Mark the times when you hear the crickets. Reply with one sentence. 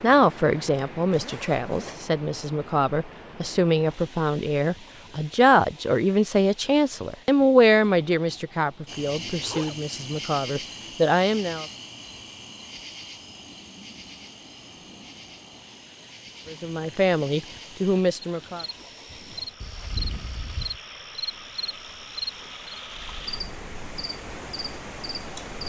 The crickets can be heard from 8.8 to 25.6 s.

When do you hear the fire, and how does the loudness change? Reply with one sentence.
The fire can't be heard in this clip.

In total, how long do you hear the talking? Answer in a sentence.
You can hear the talking for 14 seconds altogether.